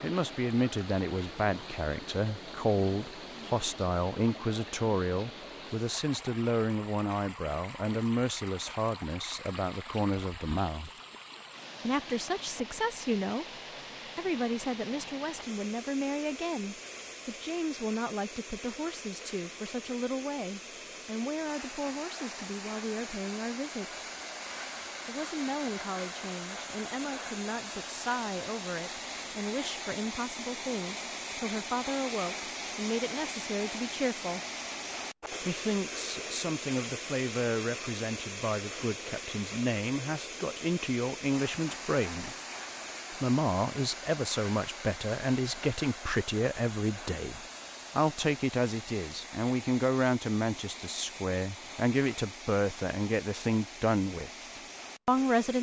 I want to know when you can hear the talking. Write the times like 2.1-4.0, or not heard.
0.0-10.9, 11.8-13.4, 14.2-24.0, 25.1-34.4, 35.4-42.4, 43.1-55.5.